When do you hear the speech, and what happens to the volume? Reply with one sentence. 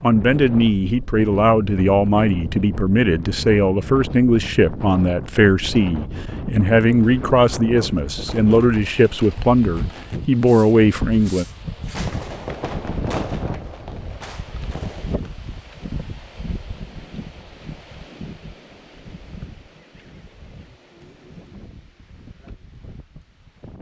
The speech can be heard from 0.0 to 11.4 s, at a steady volume.